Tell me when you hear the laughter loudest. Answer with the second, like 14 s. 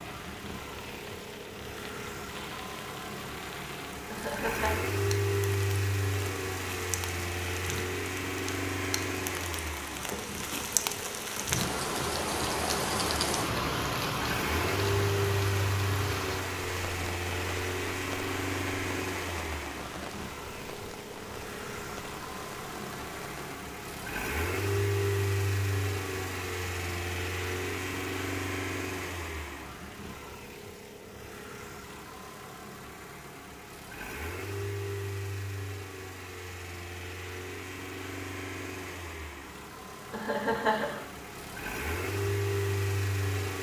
41 s.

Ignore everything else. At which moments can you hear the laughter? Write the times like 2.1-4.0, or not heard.
4.1-4.8, 40.1-41.0.